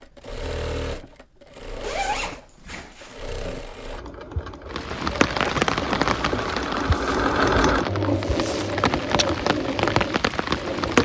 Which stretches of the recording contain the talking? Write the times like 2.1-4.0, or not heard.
not heard.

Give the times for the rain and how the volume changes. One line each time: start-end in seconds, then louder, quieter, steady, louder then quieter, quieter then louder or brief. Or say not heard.
4.7-11.0 quieter then louder.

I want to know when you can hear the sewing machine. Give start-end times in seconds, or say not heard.
0.0-11.0.